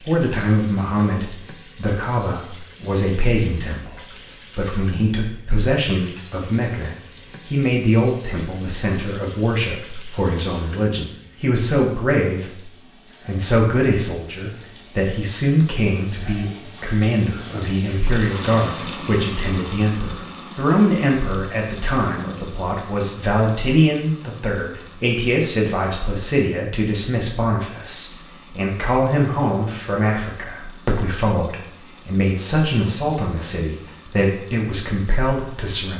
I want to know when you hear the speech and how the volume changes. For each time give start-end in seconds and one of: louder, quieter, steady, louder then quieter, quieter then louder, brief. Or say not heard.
0.0-35.9 steady.